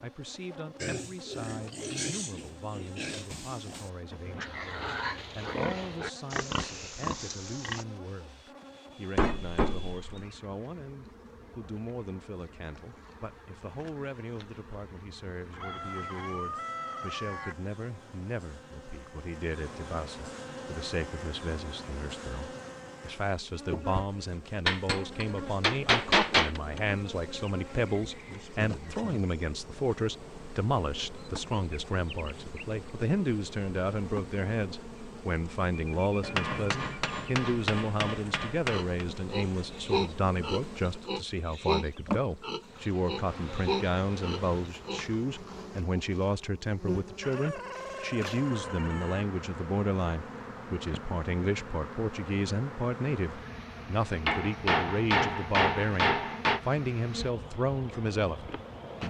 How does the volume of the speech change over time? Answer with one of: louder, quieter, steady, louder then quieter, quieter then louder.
louder.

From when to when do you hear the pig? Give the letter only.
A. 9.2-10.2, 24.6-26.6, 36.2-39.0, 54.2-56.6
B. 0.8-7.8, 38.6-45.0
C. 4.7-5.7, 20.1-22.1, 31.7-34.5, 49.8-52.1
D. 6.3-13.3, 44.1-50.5
B.